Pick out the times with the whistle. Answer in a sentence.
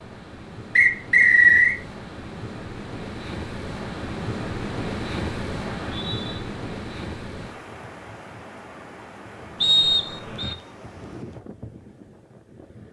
The whistle can be heard from 0.8 to 1.8 s, from 5.8 to 6.3 s and from 9.6 to 10.6 s.